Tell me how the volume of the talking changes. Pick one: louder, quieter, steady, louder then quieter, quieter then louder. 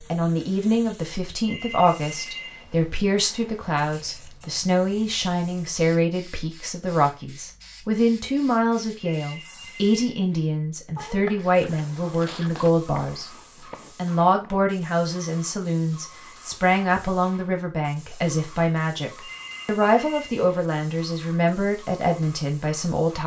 steady.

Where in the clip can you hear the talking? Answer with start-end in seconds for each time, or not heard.
0.0-13.3, 13.9-23.2.